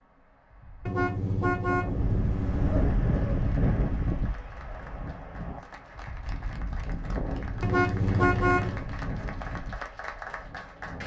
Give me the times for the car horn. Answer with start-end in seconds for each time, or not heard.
0.8-2.9, 7.6-8.8.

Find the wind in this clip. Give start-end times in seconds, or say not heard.
0.0-11.0.